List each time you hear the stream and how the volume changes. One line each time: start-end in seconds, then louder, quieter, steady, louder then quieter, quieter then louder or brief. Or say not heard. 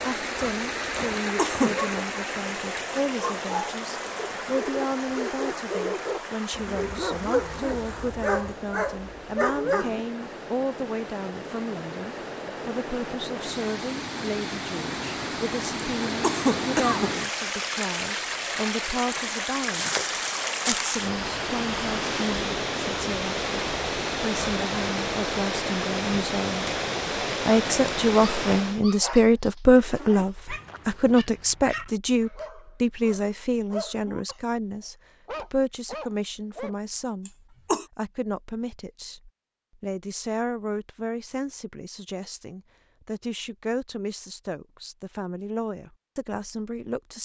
0.0-28.9 quieter then louder.